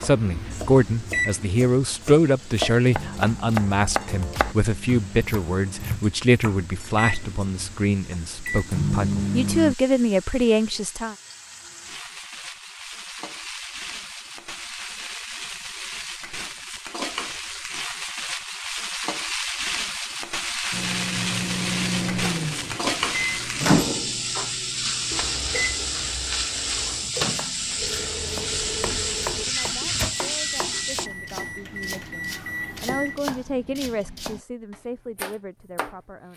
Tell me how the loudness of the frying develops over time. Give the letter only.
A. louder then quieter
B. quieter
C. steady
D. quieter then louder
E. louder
E.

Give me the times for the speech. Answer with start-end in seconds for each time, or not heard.
0.0-11.2, 29.4-36.3.